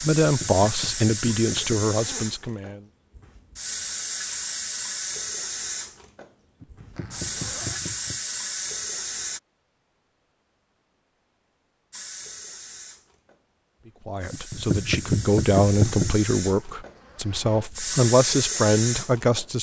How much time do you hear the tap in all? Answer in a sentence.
You can hear the tap for 17 seconds altogether.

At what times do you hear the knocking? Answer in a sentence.
You can hear the knocking from 0.2 to 1.8 s, from 6.6 to 8.2 s and from 14.3 to 16.2 s.